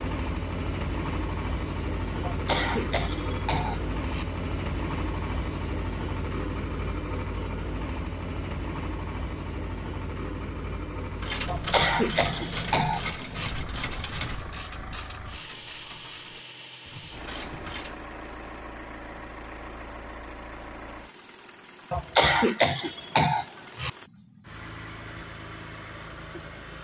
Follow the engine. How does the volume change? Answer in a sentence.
The loudness of the engine goes down.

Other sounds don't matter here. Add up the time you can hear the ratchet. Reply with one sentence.
The ratchet can be heard for 7 seconds in total.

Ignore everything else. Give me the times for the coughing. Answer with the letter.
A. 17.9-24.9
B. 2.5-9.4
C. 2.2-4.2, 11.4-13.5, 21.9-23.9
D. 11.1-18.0
C.